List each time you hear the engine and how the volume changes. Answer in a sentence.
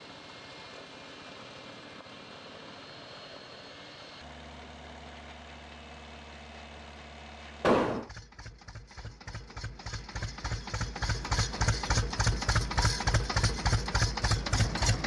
You can hear the engine from 0.0 to 15.0 s, getting louder.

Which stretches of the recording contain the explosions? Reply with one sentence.
The explosions can be heard from 7.6 to 8.1 s.